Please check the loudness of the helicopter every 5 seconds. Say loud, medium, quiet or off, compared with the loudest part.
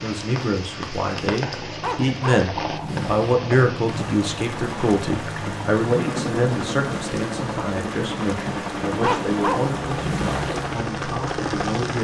medium, loud, loud.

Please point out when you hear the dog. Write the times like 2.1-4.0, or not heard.
1.8-3.4, 9.0-10.6.